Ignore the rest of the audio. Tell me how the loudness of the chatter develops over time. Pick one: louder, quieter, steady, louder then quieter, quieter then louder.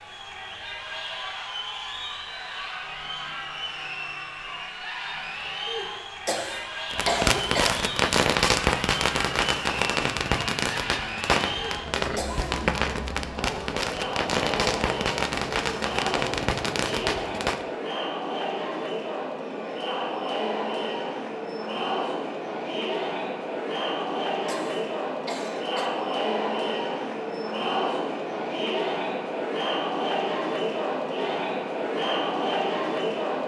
louder.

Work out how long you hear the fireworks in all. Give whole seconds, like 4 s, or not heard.
11 s.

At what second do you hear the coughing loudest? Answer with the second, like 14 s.
7 s.